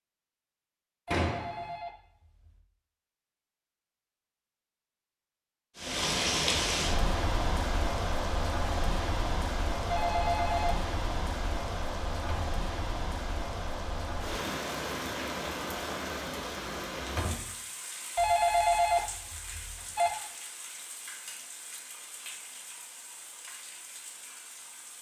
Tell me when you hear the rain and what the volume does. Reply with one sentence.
You can hear the rain from 5.8 to 24.9 s, getting quieter.